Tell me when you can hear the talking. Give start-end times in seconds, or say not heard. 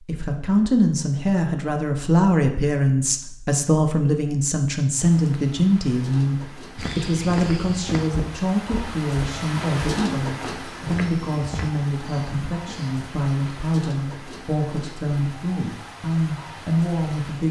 0.0-17.4.